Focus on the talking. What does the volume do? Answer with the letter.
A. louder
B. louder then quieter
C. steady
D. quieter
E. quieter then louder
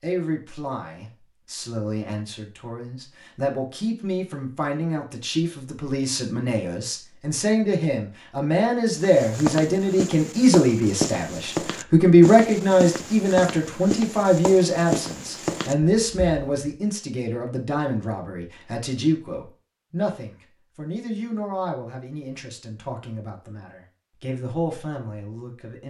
B.